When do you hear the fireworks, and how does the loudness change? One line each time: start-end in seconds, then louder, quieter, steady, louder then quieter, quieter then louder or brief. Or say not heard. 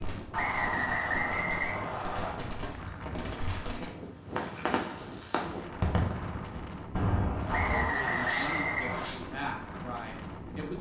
0.0-9.2 louder.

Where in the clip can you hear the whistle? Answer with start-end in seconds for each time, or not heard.
0.3-2.4, 7.5-9.1.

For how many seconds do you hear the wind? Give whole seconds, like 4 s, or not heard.
11 s.